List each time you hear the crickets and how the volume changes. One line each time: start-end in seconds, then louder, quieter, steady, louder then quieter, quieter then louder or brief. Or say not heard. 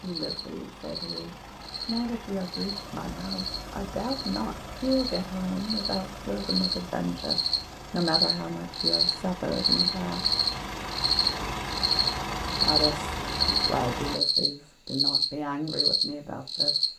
0.0-16.9 louder.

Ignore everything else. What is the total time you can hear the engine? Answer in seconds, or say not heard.
14 s.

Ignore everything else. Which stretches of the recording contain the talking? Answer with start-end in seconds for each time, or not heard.
0.0-10.3, 12.6-16.9.